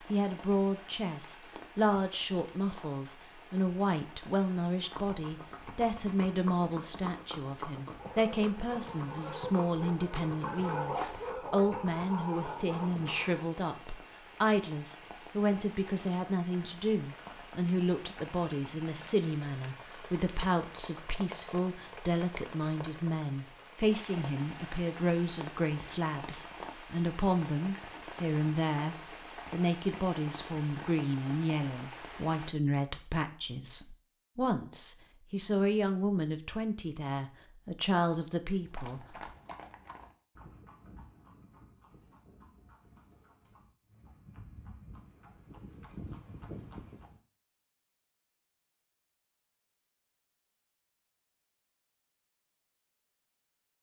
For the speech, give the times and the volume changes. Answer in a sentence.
You can hear the speech from 0.1 to 39.1 s, at a steady volume.